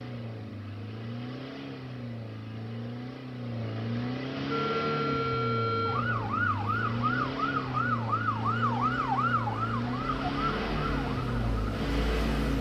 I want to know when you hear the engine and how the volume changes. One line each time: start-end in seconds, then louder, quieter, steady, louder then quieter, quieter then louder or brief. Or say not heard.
0.0-12.5 louder.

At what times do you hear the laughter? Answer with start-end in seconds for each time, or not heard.
not heard.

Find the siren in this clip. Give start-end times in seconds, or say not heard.
4.5-12.5.